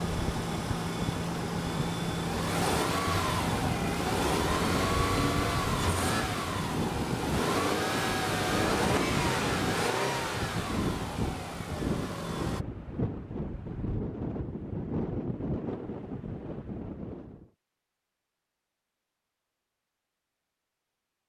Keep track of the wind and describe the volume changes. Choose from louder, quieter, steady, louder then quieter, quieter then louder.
steady.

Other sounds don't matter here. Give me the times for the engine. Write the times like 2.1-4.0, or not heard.
0.0-12.6.